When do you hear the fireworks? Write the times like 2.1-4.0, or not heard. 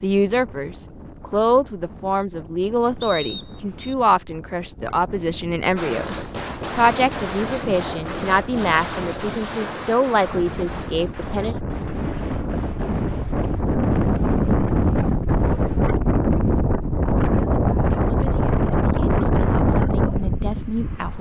5.8-15.8.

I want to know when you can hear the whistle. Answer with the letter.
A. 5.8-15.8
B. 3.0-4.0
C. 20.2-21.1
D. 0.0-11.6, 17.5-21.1
B.